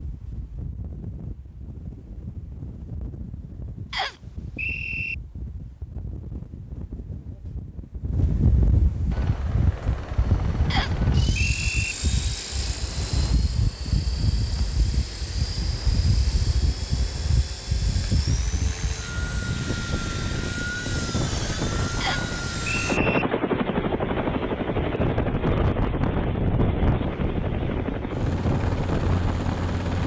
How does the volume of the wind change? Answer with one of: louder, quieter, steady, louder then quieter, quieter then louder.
louder.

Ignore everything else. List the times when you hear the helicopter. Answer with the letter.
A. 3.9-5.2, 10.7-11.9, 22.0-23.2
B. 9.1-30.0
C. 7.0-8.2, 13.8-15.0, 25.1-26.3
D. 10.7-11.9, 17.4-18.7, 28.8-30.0
B.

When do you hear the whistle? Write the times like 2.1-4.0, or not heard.
3.9-5.2, 10.7-11.9, 22.0-23.2.